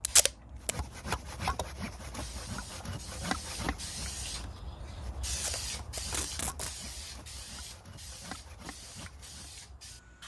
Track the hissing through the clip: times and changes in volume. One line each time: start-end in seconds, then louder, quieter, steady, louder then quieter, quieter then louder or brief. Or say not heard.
0.0-10.2 louder then quieter.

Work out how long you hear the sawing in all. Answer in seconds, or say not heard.
9 s.